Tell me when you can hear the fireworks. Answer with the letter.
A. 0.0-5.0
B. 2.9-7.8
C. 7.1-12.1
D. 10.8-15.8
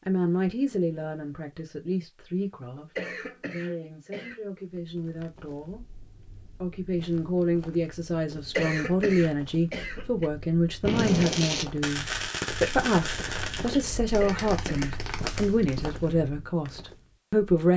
D.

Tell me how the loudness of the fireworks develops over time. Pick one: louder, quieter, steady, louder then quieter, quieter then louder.
quieter then louder.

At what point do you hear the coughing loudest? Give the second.
9 s.